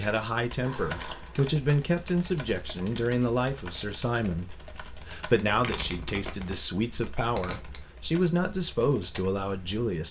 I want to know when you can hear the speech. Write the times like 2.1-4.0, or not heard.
0.0-10.0.